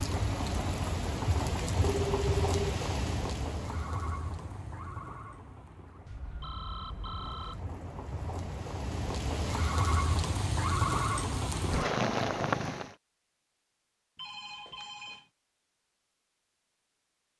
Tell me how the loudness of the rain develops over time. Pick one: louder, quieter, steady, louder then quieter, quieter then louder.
quieter then louder.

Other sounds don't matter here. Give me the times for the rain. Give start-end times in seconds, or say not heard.
0.0-12.9.